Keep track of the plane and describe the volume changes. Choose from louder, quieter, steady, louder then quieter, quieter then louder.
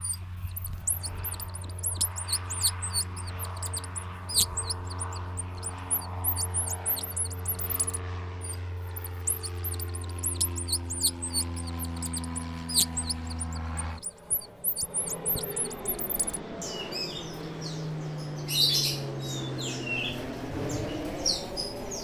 louder.